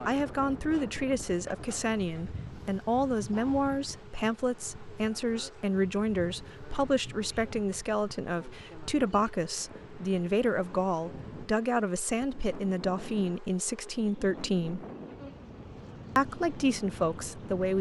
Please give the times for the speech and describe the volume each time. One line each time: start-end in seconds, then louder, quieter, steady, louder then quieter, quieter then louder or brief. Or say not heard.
0.1-14.8 steady
16.1-17.7 brief.